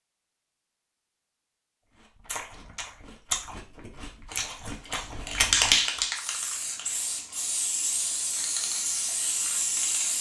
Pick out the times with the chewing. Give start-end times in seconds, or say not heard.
2.1-6.0.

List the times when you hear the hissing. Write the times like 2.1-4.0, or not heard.
4.3-10.1.